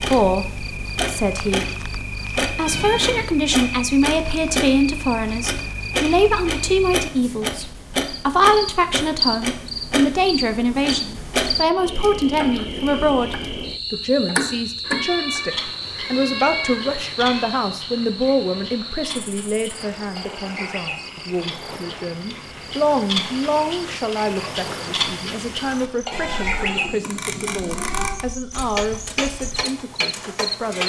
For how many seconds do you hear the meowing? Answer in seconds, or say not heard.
6 s.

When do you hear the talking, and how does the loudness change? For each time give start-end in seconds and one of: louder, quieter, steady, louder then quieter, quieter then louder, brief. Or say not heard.
0.0-1.6 brief
2.5-30.8 quieter.